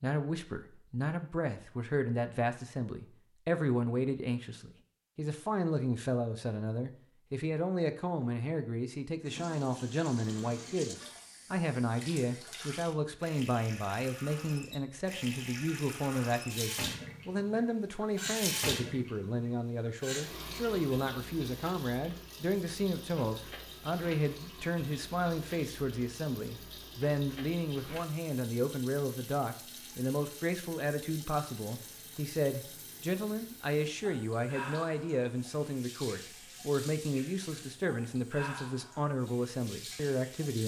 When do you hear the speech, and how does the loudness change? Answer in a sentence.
The speech can be heard from 0.0 to 40.6 s, at a steady volume.